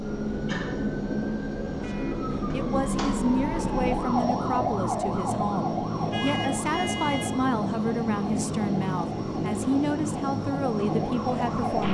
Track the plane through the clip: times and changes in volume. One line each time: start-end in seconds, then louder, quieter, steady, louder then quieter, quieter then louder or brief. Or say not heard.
0.0-11.8 steady.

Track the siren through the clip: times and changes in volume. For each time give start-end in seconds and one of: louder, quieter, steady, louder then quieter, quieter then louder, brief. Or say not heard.
0.0-11.8 louder then quieter.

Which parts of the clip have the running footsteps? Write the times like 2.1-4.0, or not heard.
not heard.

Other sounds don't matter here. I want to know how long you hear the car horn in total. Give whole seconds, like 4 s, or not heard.
2 s.